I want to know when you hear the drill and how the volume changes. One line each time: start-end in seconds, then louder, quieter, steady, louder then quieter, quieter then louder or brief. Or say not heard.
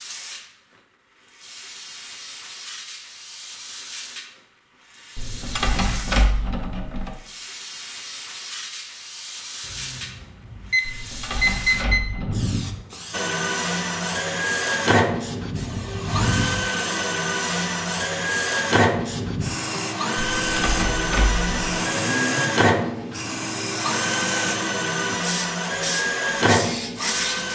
13.1-27.5 steady.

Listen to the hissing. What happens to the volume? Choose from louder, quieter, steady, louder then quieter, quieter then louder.
louder.